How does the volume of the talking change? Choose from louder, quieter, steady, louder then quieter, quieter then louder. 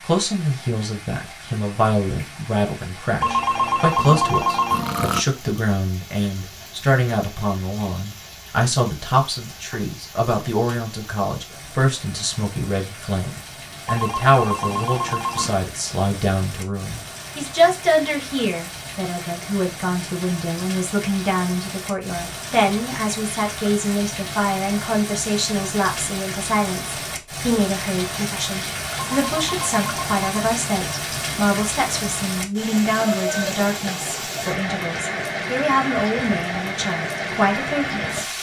steady.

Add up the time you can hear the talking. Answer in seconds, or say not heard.
38 s.